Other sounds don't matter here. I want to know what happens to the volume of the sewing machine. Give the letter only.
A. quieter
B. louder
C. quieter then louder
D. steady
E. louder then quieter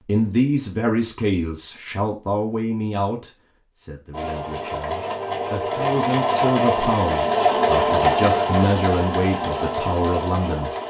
E.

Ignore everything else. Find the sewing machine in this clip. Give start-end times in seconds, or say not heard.
4.1-10.8.